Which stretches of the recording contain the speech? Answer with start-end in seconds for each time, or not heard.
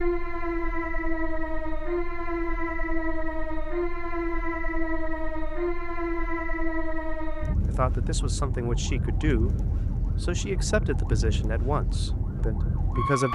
7.7-13.3.